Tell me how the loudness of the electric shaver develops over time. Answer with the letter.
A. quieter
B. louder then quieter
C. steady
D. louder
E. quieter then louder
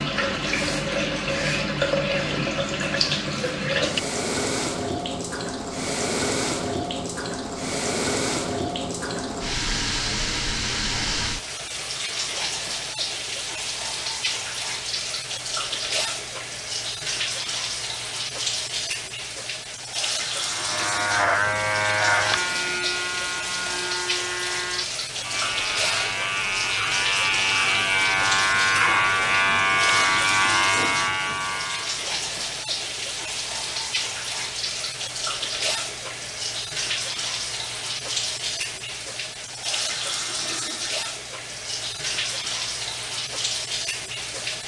E.